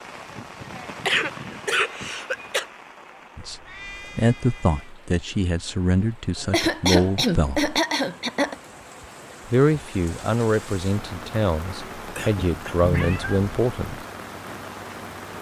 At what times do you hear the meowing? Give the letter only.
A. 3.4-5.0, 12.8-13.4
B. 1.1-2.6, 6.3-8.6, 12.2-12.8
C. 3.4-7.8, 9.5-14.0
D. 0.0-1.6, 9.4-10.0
A.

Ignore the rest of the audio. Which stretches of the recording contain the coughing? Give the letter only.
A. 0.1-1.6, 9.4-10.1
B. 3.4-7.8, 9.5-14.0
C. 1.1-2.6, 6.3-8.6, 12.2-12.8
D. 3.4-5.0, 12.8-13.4
C.